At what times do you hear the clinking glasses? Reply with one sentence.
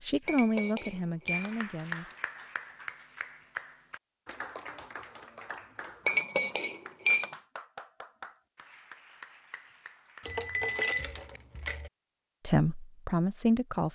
You can hear the clinking glasses from 0.2 to 2.1 s, from 6.0 to 7.3 s and from 10.2 to 11.9 s.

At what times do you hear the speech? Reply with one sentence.
The speech can be heard from 0.1 to 2.1 s and from 12.4 to 13.9 s.